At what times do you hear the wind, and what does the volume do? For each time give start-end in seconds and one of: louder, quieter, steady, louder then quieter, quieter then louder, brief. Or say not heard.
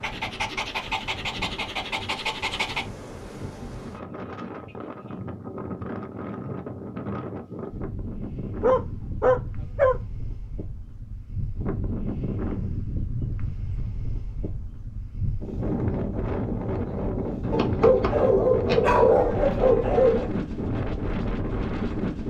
0.0-22.2 louder.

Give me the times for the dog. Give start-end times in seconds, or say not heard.
0.0-2.9, 8.6-9.9, 17.5-20.3.